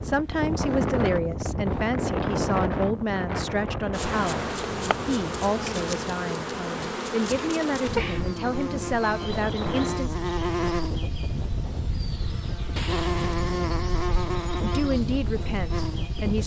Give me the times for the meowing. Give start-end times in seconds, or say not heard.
12.8-13.4.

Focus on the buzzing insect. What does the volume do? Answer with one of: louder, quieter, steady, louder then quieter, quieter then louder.
steady.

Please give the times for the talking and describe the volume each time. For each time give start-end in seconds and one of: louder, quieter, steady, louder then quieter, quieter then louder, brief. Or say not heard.
0.0-10.2 steady
14.6-16.4 brief.